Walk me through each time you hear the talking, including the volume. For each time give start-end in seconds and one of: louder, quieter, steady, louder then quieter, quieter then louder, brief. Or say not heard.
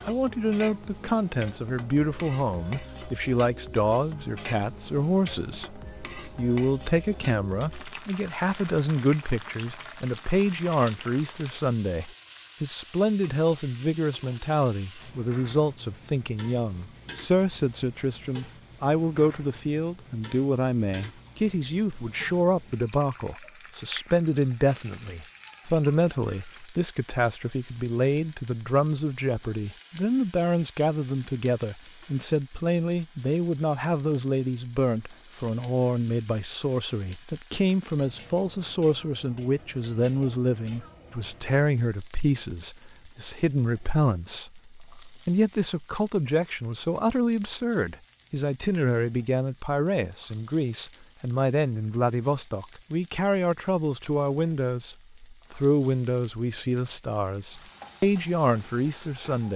0.1-59.5 steady.